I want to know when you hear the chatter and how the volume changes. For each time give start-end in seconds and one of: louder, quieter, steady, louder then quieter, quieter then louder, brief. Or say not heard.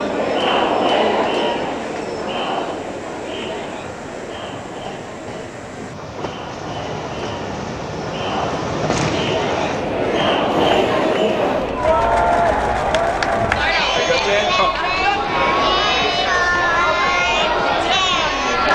0.0-18.7 quieter then louder.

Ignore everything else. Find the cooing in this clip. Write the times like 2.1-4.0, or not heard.
not heard.